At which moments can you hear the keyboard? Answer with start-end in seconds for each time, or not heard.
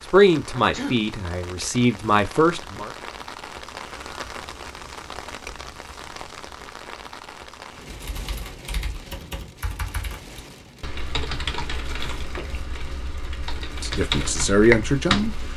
7.8-15.5.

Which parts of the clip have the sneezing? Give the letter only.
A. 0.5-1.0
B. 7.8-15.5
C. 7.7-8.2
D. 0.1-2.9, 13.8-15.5
A.